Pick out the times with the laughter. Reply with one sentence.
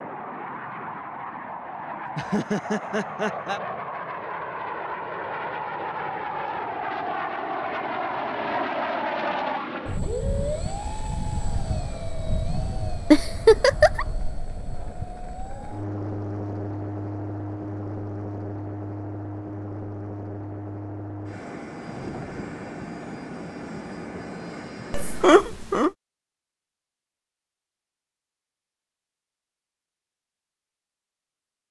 You can hear the laughter from 2.0 to 3.6 s, from 13.1 to 14.1 s and from 24.9 to 25.9 s.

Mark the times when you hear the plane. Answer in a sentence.
The plane can be heard from 0.0 to 25.4 s.